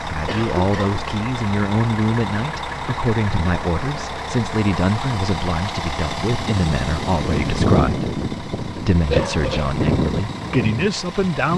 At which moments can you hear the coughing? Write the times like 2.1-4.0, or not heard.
0.2-1.1, 9.1-9.7.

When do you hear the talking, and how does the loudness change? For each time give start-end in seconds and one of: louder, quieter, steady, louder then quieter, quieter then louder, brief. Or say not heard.
0.0-11.5 steady.